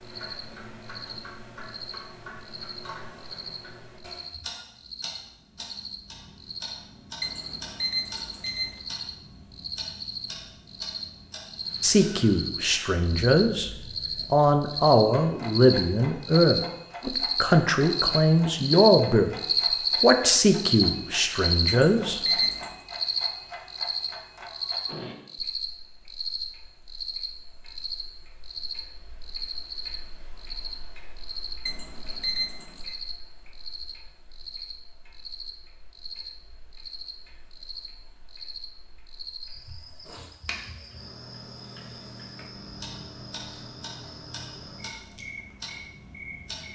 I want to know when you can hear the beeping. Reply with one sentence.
The beeping can be heard from 7.2 to 8.8 s, from 21.6 to 22.8 s and from 31.6 to 33.0 s.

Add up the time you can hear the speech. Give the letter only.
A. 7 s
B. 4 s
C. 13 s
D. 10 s
D.